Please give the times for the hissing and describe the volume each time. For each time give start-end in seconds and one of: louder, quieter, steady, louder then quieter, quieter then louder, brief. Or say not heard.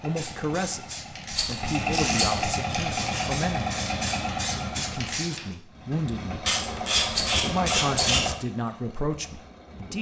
0.0-5.5 louder.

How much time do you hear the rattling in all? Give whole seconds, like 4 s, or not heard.
2 s.